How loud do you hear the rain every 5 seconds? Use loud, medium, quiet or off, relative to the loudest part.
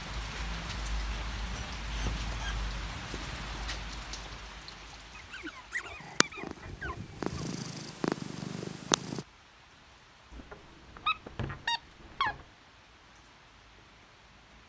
loud, quiet, quiet.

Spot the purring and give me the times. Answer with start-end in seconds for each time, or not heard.
6.0-9.2.